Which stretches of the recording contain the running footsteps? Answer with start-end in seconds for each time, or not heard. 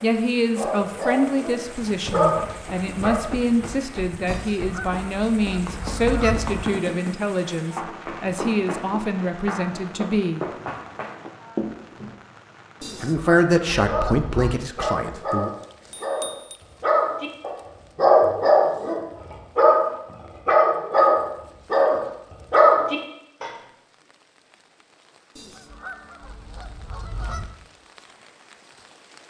2.0-12.2.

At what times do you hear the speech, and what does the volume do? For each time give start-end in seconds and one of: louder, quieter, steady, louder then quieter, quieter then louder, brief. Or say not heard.
0.0-10.4 steady
13.0-15.5 brief.